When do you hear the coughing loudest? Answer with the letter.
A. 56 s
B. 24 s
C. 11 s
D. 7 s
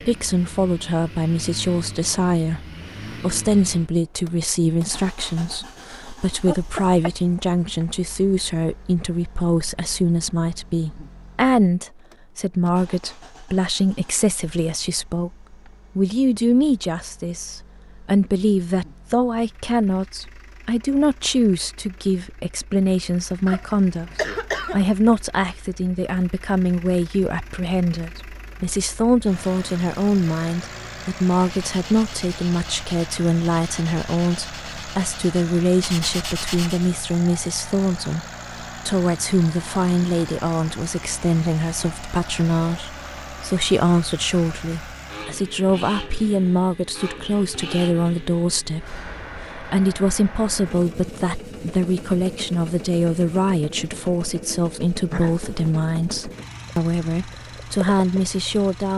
B.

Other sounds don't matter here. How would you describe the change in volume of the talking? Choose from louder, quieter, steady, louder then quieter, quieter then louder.
steady.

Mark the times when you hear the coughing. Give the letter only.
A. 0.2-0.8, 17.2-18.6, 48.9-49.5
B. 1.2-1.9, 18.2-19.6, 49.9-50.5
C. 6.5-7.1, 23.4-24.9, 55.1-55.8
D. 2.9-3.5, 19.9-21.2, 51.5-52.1
C.